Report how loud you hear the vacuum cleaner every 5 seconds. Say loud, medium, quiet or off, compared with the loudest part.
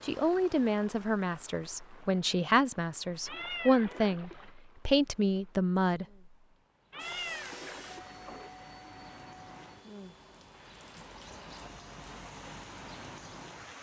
off, loud, medium.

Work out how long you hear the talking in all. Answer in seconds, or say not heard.
6 s.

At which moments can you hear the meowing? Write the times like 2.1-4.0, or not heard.
3.2-4.5, 6.9-8.6.